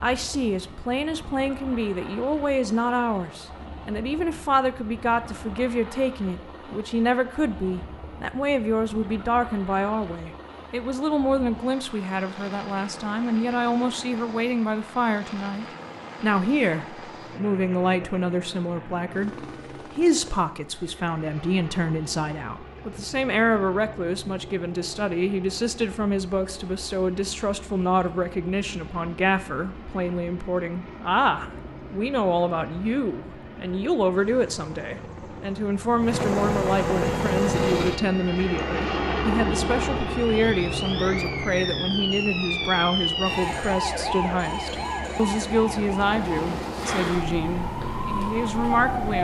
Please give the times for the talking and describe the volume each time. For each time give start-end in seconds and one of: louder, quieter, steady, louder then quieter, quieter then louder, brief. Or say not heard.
0.0-49.1 steady.